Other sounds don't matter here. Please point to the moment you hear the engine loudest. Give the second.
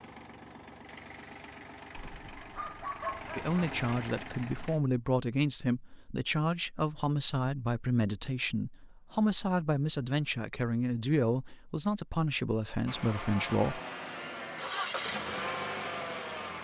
15 s.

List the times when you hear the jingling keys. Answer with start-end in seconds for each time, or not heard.
not heard.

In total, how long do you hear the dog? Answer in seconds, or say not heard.
2 s.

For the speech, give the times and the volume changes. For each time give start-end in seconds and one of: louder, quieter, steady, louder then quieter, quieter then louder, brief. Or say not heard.
3.4-13.8 steady.